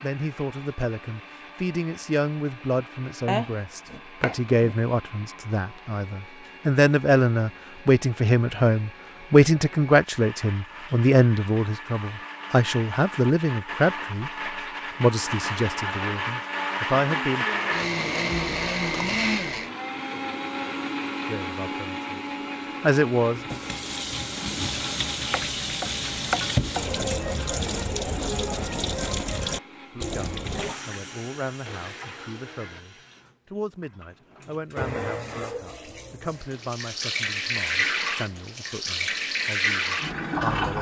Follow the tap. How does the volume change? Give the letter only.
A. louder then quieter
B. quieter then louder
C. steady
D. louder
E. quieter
B.